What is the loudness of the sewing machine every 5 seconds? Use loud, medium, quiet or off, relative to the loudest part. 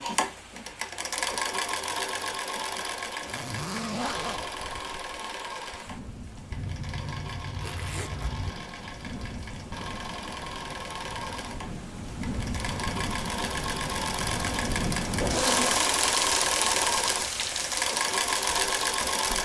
medium, quiet, medium, loud.